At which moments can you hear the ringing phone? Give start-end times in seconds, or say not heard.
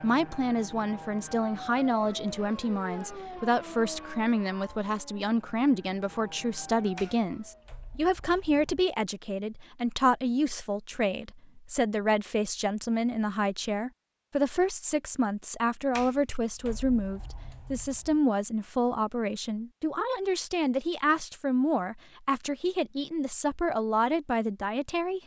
not heard.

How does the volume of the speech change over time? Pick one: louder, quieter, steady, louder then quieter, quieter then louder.
steady.